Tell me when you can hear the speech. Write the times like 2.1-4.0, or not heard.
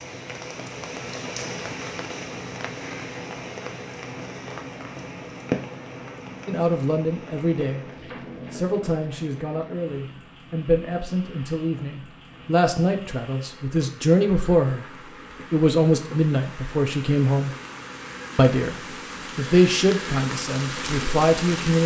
6.5-7.9, 8.5-14.8, 15.5-17.6, 18.4-21.8.